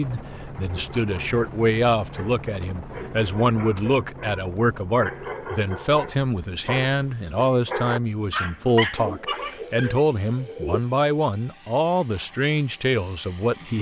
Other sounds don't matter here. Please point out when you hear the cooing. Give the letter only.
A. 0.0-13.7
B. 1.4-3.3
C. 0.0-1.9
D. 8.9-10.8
D.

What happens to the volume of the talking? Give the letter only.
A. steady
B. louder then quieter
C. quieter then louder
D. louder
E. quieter
A.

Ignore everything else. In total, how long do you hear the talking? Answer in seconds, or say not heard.
14 s.